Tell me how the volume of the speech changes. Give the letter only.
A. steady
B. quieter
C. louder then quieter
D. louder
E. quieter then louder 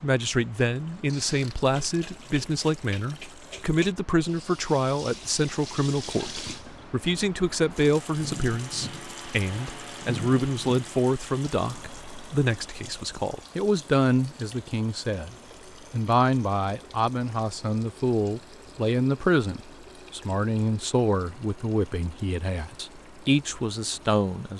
A.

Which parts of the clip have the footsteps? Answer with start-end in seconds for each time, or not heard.
not heard.